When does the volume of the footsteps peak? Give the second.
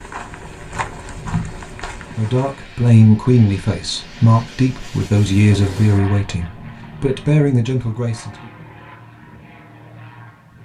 1 s.